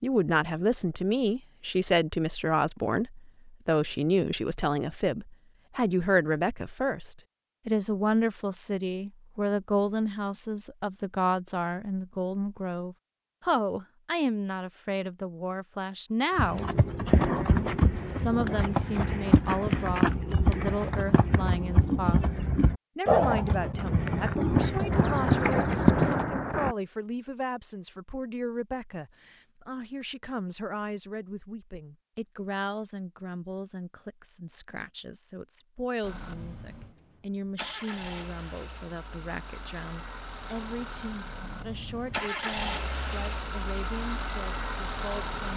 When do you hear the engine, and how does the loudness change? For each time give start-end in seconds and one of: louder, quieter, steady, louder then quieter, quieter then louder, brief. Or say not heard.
36.0-45.5 louder.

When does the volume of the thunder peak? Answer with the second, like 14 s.
26 s.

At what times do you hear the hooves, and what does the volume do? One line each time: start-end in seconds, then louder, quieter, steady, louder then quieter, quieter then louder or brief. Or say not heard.
16.4-26.2 steady.